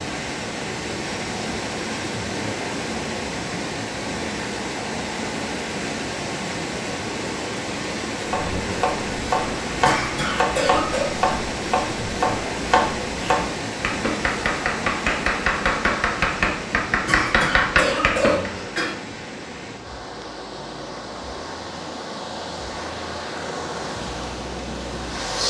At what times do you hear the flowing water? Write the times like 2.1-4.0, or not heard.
0.0-25.4.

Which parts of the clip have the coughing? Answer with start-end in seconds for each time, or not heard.
9.7-11.1, 16.9-18.9.